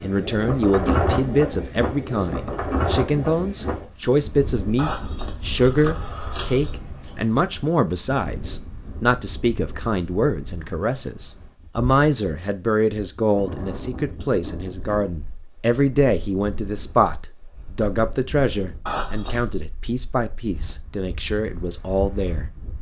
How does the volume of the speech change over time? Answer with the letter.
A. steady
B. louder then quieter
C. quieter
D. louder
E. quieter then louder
A.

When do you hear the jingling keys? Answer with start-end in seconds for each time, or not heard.
4.8-6.8, 18.9-19.6.